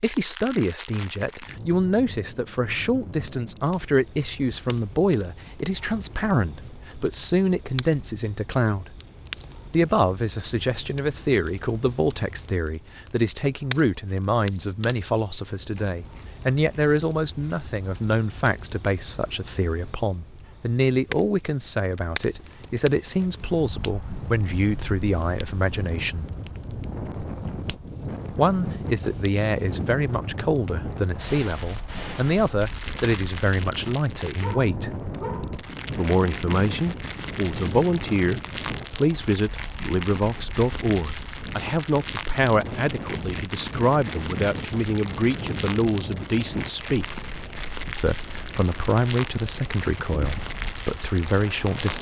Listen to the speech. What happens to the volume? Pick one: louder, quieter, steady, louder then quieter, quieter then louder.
steady.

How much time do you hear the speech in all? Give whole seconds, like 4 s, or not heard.
47 s.